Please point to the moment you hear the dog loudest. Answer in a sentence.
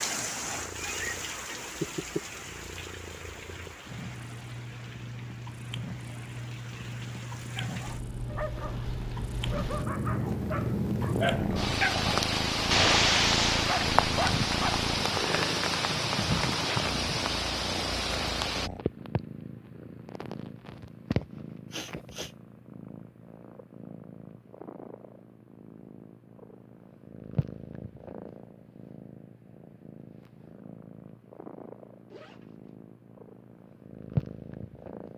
The volume of the dog peaks at 13 seconds.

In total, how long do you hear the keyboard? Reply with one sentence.
You can't hear the keyboard here.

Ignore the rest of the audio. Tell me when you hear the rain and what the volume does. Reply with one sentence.
You can hear the rain from 0.0 to 18.7 s, getting quieter then louder.